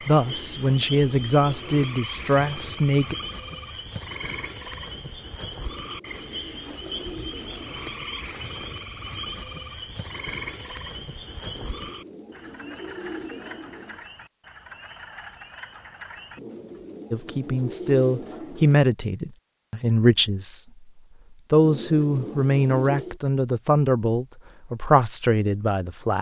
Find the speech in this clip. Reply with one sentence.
You can hear the speech from 0.1 to 3.1 s, from 17.1 to 20.6 s and from 21.5 to 26.1 s.